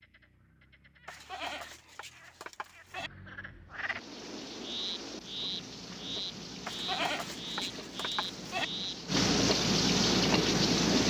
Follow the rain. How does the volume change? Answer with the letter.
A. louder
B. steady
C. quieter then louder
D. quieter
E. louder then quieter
A.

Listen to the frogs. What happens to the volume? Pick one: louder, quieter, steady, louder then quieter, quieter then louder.
louder.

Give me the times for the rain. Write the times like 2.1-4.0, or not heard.
3.7-11.0.